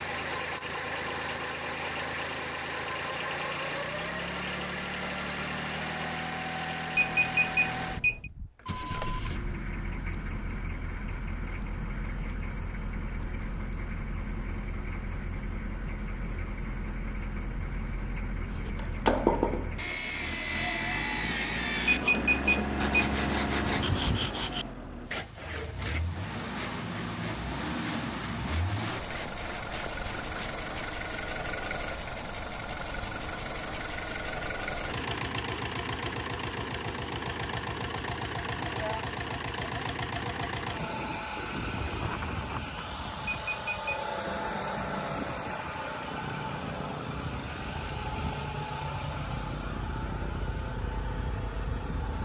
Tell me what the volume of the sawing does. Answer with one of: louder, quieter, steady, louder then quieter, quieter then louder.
quieter.